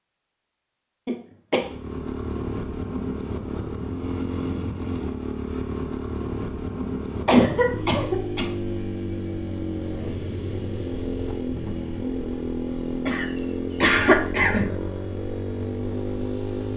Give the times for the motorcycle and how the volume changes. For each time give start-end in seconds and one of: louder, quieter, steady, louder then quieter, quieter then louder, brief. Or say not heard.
1.6-16.7 steady.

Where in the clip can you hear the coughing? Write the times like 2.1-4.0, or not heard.
1.1-1.6, 7.2-8.5, 13.1-14.7.